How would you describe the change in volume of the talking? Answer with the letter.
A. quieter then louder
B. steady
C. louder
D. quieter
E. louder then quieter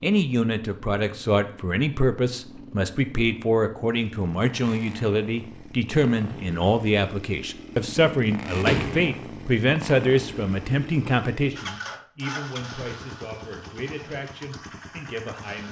D.